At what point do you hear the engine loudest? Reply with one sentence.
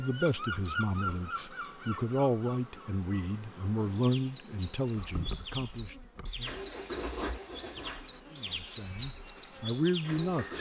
The loudest moment of the engine is at 7 seconds.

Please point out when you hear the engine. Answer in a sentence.
The engine can be heard from 6.4 to 10.5 s.